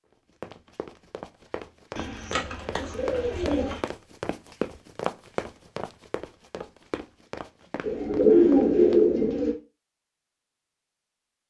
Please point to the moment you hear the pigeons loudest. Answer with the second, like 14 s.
8 s.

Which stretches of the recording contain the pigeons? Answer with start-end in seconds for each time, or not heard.
1.9-3.8, 7.8-9.6.